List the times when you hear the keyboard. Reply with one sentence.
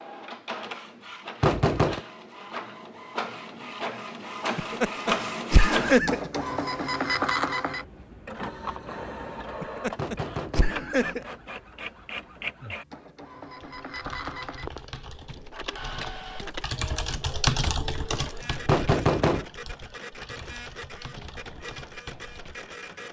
You can hear the keyboard from 13.4 to 22.8 s.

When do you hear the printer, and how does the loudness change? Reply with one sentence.
The printer can be heard from 0.0 to 23.0 s, getting louder then quieter.